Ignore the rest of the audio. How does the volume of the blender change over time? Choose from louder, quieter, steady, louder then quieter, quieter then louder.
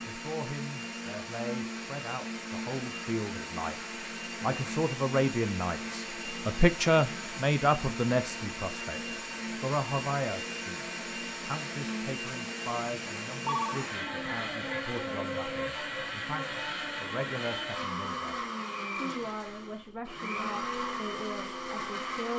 steady.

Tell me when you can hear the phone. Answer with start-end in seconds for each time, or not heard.
13.4-13.8.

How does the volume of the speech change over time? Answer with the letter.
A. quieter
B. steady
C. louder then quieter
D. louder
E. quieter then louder
C.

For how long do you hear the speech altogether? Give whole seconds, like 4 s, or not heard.
22 s.